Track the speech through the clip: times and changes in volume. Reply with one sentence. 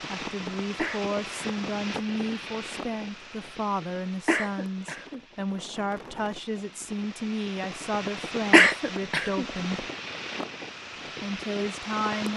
The speech can be heard from 0.1 to 9.8 s, at a steady volume; and briefly from 11.2 to 12.3 s.